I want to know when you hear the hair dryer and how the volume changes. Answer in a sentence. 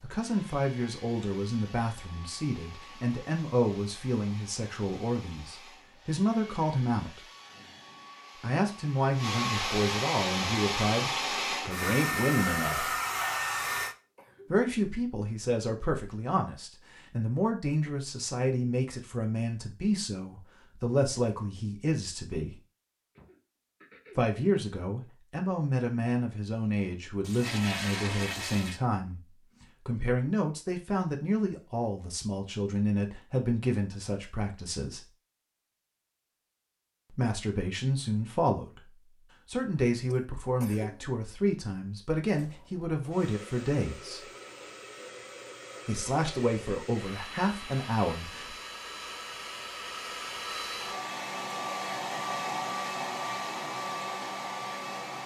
You can hear the hair dryer from 0.0 to 13.9 s, getting louder; and from 42.3 to 55.2 s, getting louder.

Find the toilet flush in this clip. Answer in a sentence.
The toilet flush can be heard from 27.2 to 28.8 s.